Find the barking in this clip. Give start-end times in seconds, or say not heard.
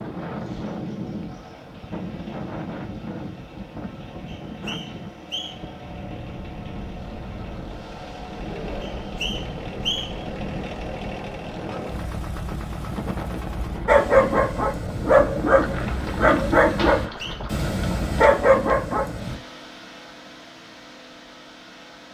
13.8-19.4.